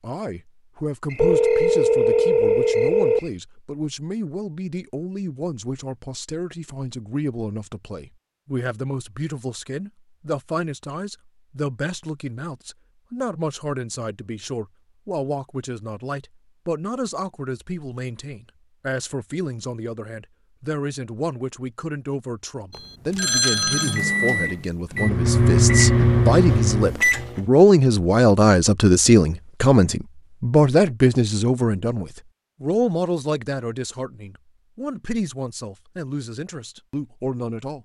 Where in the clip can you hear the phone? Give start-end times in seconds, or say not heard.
1.1-3.2, 22.7-24.0.